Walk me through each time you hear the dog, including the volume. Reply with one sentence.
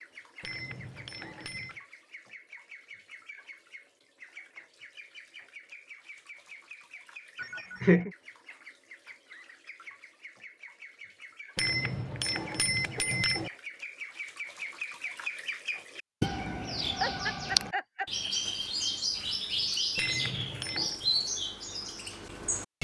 You can't hear the dog here.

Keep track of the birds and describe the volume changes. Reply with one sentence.
The volume of the birds goes up.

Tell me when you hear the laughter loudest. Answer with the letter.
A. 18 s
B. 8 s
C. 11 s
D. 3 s
B.